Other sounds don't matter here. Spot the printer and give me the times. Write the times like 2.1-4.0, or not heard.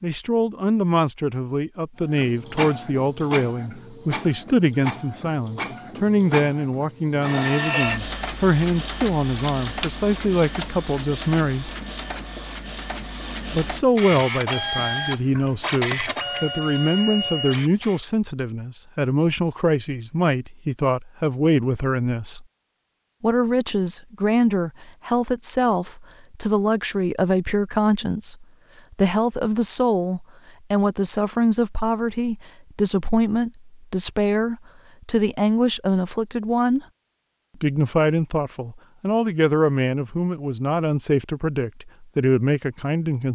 2.0-18.0.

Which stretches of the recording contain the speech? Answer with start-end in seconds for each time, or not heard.
0.0-11.7, 13.5-22.4, 23.2-36.9, 37.6-43.3.